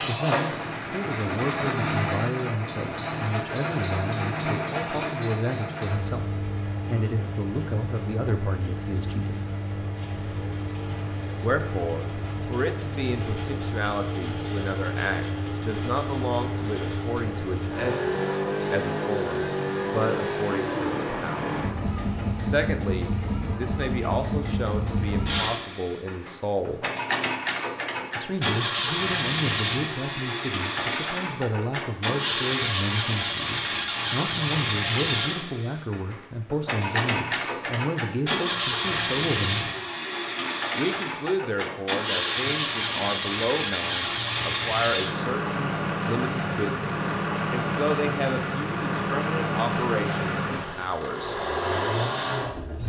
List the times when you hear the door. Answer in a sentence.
You can't hear the door here.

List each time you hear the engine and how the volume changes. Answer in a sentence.
The engine can be heard from 0.0 to 52.8 s, at a steady volume.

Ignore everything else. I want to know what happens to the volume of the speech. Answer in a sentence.
The loudness of the speech stays about the same.